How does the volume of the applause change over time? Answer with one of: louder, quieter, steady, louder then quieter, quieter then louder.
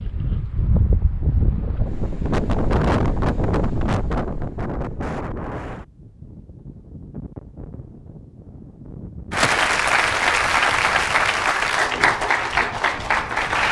steady.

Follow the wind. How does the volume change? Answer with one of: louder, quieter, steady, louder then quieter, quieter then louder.
quieter.